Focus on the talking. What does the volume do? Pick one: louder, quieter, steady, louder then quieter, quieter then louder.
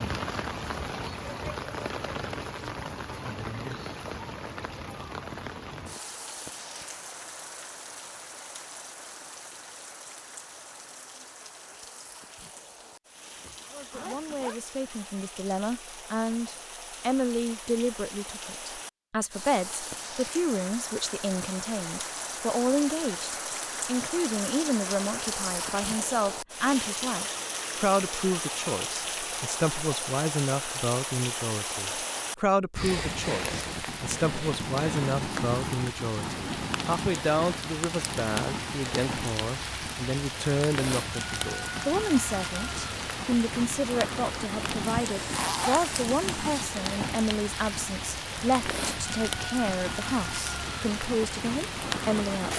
steady.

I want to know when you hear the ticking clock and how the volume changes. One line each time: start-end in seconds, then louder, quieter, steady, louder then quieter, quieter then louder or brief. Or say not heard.
not heard.